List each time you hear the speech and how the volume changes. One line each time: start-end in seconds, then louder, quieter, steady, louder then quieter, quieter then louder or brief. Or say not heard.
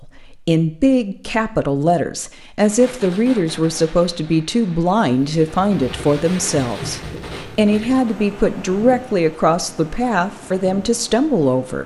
0.0-11.8 steady.